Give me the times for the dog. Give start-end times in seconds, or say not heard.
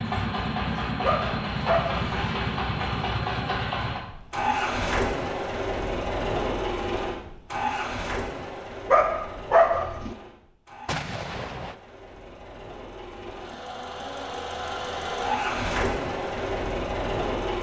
1.0-2.1, 8.8-10.2.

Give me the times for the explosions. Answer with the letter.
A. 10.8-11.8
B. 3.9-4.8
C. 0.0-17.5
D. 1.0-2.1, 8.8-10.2
A.